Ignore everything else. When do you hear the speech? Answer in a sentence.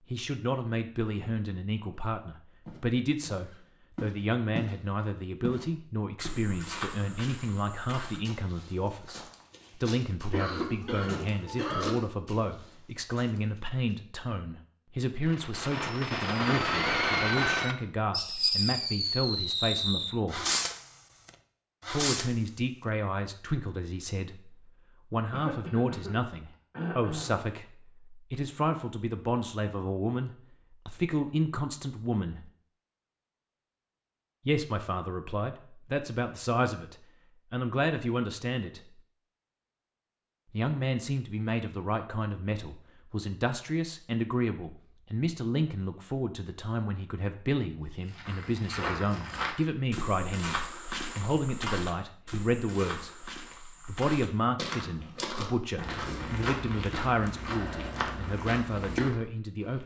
The speech can be heard from 0.1 to 20.4 s, from 21.9 to 32.5 s, from 34.5 to 39.0 s and from 40.5 to 59.8 s.